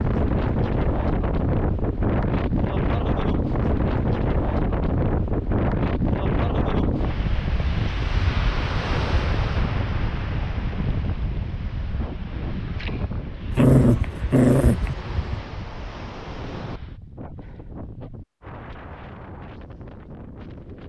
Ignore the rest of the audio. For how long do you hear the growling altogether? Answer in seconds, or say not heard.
2 s.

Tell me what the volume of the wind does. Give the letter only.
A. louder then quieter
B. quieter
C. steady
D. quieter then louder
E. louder
B.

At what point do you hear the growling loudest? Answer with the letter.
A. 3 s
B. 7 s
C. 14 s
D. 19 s
C.